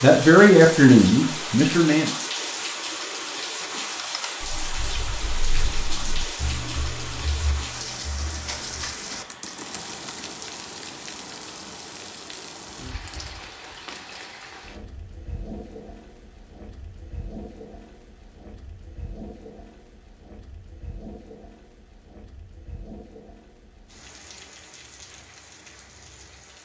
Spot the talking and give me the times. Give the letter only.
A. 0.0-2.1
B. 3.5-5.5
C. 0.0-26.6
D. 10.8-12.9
A.